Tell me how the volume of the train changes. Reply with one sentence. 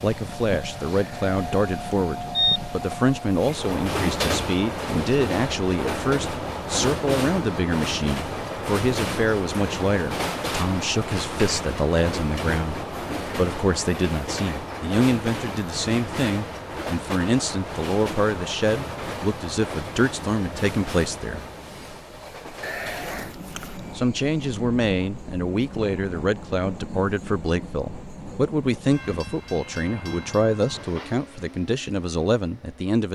The volume of the train goes down.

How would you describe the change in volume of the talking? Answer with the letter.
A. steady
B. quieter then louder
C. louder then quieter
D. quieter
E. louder
A.